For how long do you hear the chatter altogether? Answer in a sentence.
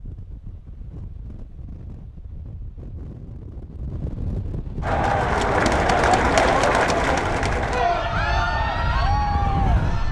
You can hear the chatter for 5 seconds altogether.